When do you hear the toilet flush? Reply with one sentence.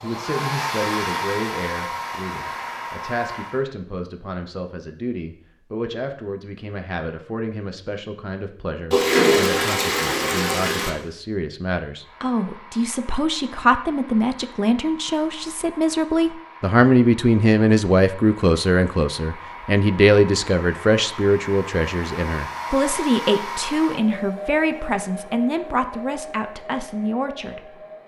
You can hear the toilet flush from 8.9 to 10.9 s.